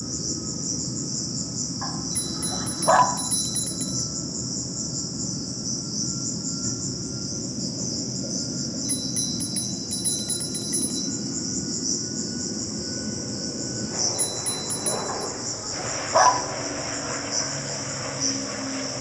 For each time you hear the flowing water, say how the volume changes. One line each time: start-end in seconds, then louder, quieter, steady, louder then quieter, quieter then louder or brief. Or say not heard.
not heard.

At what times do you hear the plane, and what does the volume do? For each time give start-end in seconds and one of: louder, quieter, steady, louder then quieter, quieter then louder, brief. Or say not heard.
0.0-18.9 steady.